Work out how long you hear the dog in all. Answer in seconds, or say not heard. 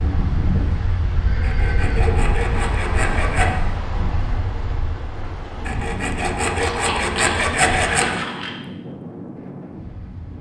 not heard.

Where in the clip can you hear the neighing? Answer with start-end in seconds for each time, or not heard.
1.2-2.2, 6.6-8.6.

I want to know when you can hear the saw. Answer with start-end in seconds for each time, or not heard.
1.4-3.5, 5.7-8.2.